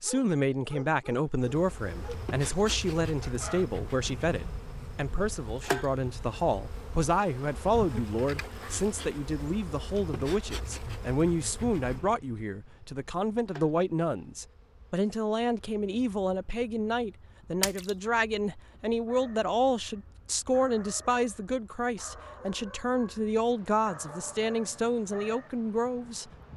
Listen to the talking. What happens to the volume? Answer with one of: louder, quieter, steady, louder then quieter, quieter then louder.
steady.